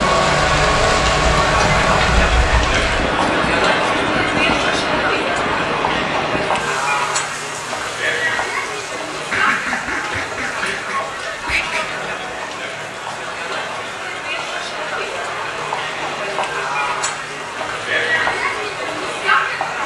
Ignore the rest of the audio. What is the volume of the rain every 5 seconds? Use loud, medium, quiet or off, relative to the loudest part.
loud, medium, quiet, quiet.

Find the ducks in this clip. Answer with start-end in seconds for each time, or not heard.
9.2-11.8.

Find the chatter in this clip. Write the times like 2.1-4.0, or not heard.
0.0-19.8.